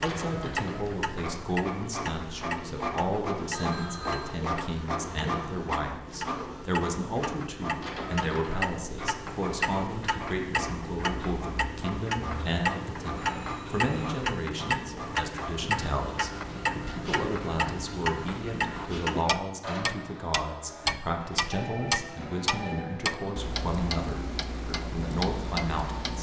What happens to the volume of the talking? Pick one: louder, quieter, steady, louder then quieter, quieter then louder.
steady.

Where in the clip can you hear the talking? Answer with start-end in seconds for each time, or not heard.
0.0-26.1.